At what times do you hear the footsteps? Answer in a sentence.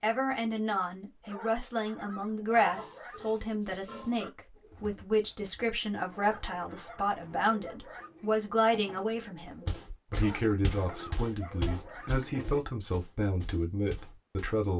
The footsteps can be heard from 9.7 to 14.7 s.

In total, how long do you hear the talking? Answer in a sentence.
You can hear the talking for 15 seconds altogether.